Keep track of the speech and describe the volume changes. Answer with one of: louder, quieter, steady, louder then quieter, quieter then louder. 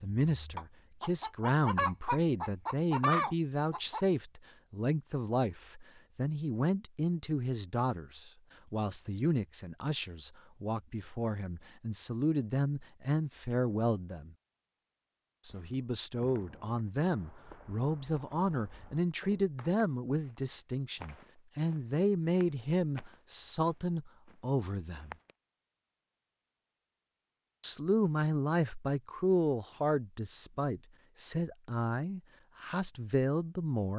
steady.